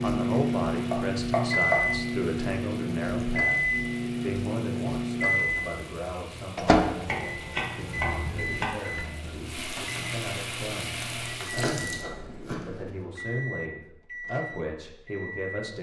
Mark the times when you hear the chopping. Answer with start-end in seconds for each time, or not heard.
0.9-1.9, 7.0-8.7, 11.5-13.0.